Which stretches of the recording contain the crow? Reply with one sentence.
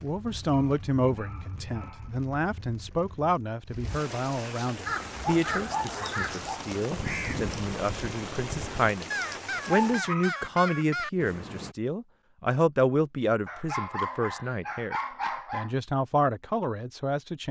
The crow can be heard from 4.8 to 11.8 s.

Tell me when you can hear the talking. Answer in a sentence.
You can hear the talking from 0.0 to 17.4 s.